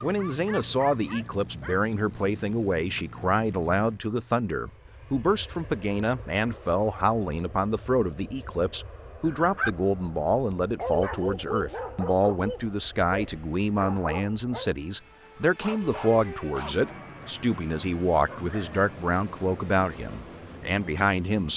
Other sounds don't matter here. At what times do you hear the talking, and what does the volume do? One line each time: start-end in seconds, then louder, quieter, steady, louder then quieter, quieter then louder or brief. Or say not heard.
0.0-21.5 steady.